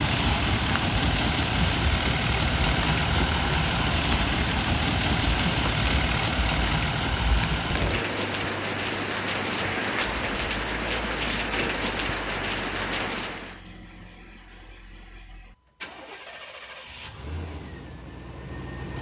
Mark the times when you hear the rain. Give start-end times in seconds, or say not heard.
0.0-13.6.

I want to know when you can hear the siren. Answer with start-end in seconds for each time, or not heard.
not heard.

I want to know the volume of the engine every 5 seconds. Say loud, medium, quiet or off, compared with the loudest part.
loud, loud, quiet, quiet.